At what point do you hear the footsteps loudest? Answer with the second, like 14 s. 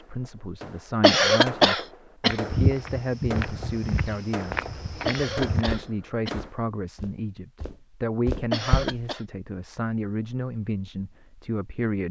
3 s.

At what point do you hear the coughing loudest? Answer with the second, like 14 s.
1 s.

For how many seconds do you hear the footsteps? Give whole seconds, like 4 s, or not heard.
7 s.